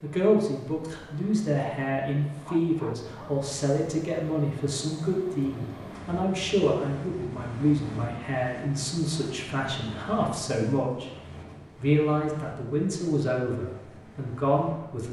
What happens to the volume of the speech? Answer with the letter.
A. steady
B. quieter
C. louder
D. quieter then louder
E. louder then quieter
A.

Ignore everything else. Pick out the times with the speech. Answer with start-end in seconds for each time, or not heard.
0.0-11.1, 11.8-15.0.